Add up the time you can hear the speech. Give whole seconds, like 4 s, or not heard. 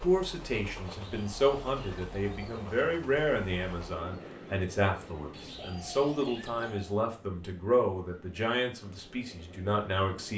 10 s.